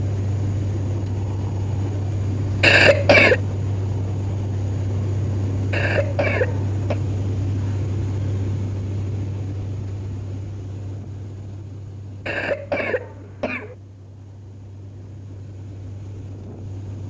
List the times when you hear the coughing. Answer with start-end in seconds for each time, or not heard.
2.6-3.4, 5.7-7.0, 12.2-13.8.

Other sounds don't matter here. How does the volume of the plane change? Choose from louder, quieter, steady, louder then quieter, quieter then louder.
quieter.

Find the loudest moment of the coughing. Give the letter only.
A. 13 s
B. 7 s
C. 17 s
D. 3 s
D.